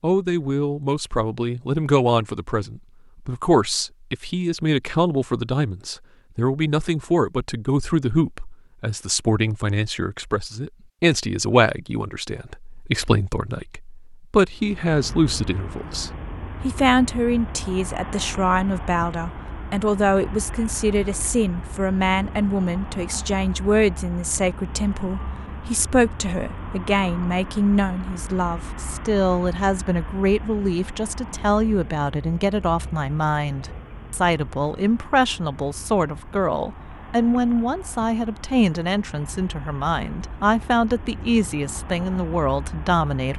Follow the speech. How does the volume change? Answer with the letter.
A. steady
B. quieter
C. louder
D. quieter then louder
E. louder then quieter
A.